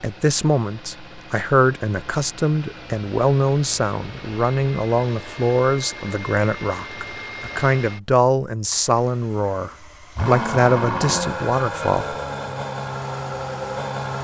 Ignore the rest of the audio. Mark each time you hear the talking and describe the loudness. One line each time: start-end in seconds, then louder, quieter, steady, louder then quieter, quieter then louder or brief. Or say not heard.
0.0-12.2 steady.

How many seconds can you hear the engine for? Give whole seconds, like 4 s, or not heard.
14 s.